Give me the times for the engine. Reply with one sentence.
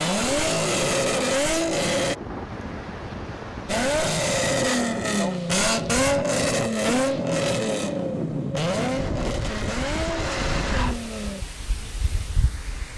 The engine can be heard from 0.0 to 2.1 s and from 3.6 to 11.4 s.